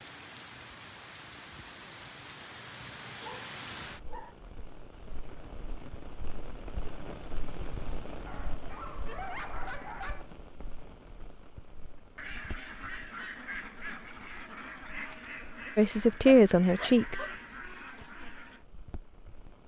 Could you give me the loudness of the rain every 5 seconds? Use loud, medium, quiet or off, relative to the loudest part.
loud, loud, medium, quiet.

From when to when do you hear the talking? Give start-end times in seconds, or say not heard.
15.8-17.2.